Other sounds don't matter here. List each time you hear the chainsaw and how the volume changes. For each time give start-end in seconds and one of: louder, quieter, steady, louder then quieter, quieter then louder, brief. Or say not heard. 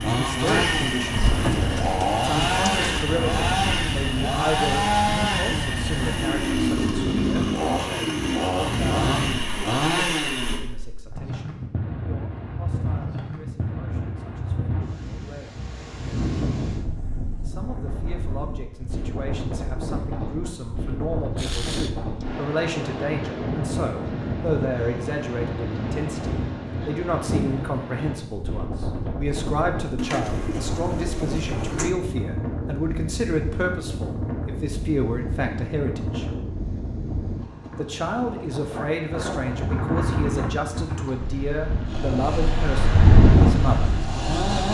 0.0-10.6 steady
41.9-44.6 brief.